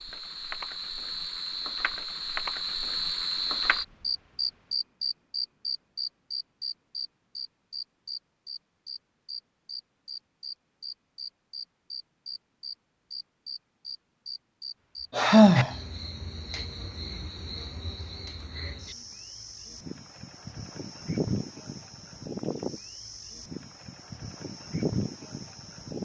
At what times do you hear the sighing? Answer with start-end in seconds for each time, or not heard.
15.2-15.7.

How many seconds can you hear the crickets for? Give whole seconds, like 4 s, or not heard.
26 s.